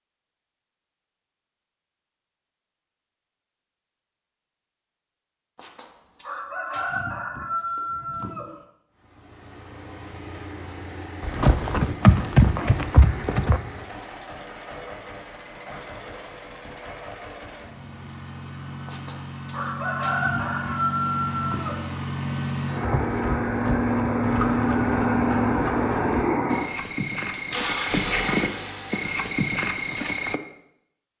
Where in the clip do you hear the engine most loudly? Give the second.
25 s.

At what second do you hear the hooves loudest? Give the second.
12 s.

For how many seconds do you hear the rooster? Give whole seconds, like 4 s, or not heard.
6 s.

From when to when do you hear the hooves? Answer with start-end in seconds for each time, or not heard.
11.2-13.6, 22.8-30.4.